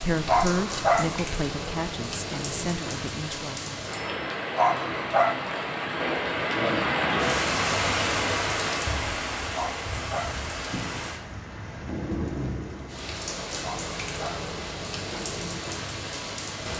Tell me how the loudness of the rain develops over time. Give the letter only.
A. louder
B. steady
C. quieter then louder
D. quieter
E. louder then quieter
E.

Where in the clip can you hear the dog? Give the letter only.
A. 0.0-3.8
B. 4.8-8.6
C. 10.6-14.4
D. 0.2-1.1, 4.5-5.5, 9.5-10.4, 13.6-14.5
D.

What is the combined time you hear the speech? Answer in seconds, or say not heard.
4 s.